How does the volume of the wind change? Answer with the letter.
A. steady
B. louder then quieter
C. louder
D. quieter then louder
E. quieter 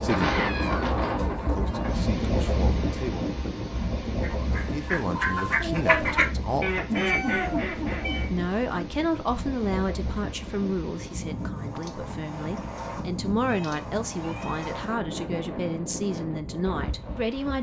E.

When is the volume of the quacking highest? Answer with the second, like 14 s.
6 s.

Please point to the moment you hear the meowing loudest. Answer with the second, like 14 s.
7 s.